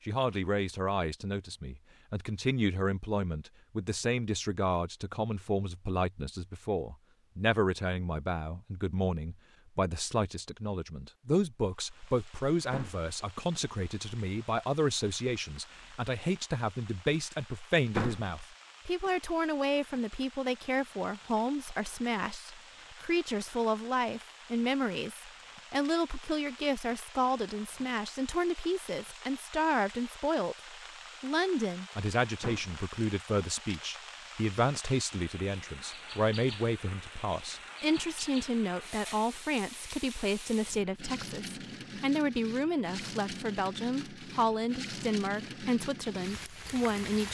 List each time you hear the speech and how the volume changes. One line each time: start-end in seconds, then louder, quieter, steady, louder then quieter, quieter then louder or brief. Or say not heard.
0.1-30.6 steady
31.2-47.2 steady.